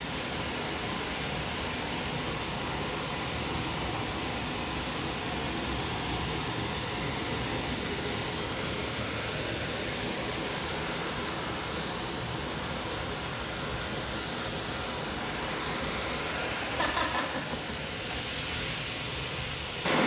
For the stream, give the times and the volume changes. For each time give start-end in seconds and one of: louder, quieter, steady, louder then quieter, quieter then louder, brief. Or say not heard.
0.0-20.0 steady.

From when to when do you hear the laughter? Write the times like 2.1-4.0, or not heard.
16.8-17.9.